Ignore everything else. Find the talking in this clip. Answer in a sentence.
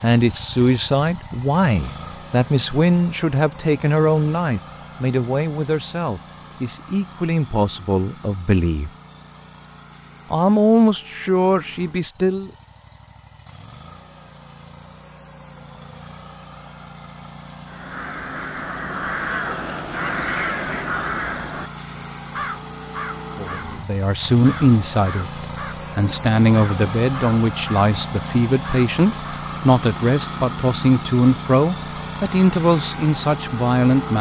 You can hear the talking from 0.0 to 8.9 s, from 10.3 to 12.5 s and from 23.4 to 34.1 s.